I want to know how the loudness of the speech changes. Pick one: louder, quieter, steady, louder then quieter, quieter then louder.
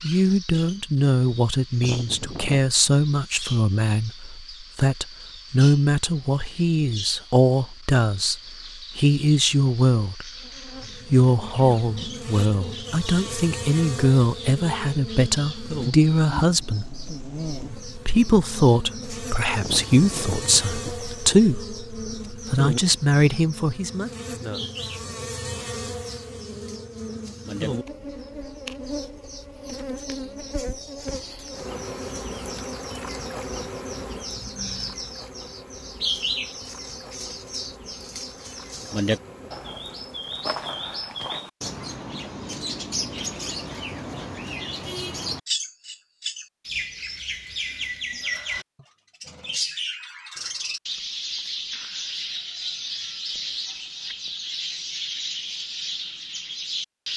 steady.